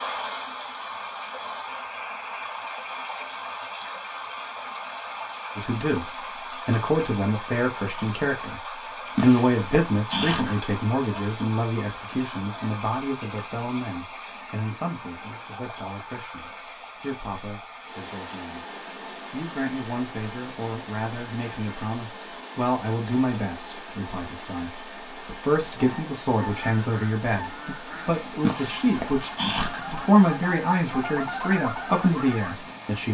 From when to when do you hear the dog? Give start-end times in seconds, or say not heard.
9.2-10.7, 28.4-30.0.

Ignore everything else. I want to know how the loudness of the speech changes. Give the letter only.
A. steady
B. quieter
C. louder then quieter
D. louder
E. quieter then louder
E.